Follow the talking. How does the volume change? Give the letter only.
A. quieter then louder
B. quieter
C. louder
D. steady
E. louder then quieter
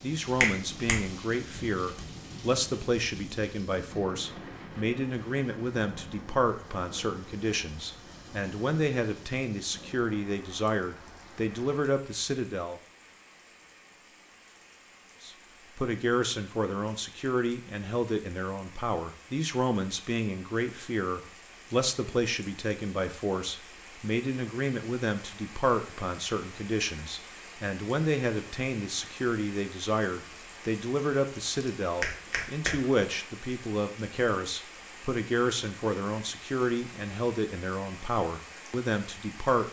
D.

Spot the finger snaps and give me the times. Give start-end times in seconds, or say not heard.
0.4-0.9, 1.6-2.0, 32.0-33.0.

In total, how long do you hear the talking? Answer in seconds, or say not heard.
37 s.